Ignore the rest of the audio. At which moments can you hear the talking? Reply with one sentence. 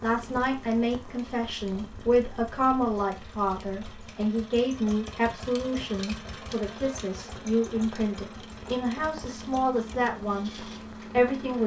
The talking can be heard from 0.0 to 10.5 s and from 11.1 to 11.6 s.